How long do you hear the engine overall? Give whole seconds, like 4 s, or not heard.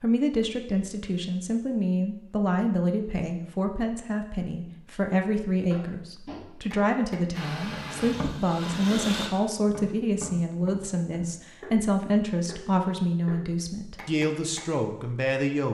2 s.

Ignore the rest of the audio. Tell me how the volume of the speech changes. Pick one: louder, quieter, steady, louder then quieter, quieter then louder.
steady.